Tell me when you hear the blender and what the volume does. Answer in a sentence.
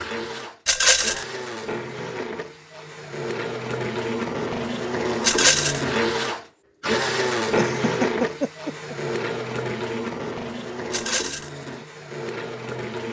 The blender can be heard from 0.0 to 13.0 s, getting louder then quieter.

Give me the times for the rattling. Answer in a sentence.
You can hear the rattling from 0.7 to 1.2 s, from 5.2 to 5.8 s and from 10.9 to 11.5 s.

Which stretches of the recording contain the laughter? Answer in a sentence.
You can hear the laughter from 7.5 to 8.9 s.